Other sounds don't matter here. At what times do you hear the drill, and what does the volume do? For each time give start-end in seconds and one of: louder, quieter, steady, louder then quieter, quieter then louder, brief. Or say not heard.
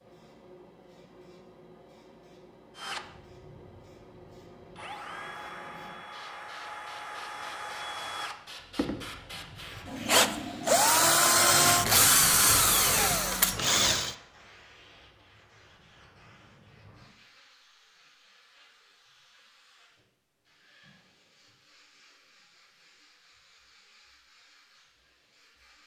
2.8-3.8 brief
4.8-14.2 louder.